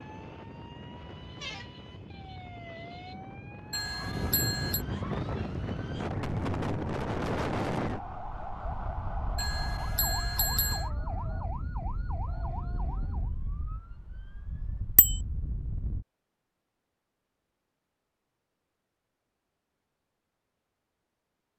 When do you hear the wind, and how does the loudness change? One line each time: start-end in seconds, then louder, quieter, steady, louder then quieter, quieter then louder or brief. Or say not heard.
0.0-16.1 louder then quieter.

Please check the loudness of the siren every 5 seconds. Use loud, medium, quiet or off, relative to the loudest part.
medium, loud, loud, off, off.